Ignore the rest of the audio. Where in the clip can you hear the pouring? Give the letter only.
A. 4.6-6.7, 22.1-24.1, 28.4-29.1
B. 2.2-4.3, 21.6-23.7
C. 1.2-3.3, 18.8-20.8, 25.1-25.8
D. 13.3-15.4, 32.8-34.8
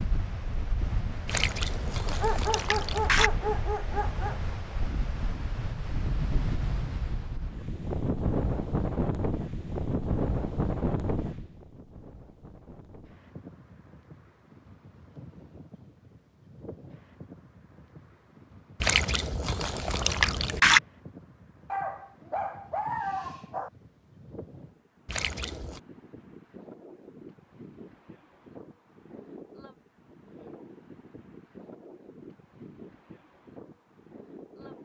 C.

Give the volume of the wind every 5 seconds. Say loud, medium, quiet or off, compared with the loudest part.
medium, loud, loud, quiet, quiet, quiet, quiet.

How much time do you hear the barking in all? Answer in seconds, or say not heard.
4 s.